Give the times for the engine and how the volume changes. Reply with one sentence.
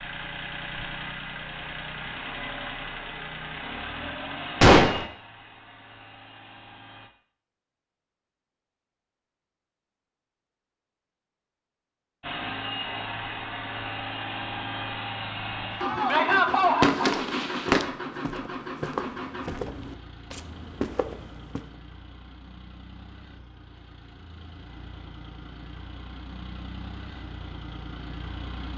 The engine can be heard from 0.0 to 7.1 s, getting quieter; and from 12.2 to 28.7 s, getting quieter then louder.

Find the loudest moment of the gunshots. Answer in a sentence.
The loudest moment of the gunshots is at 5 seconds.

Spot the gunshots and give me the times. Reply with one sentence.
The gunshots can be heard from 4.6 to 5.0 s and from 15.8 to 17.8 s.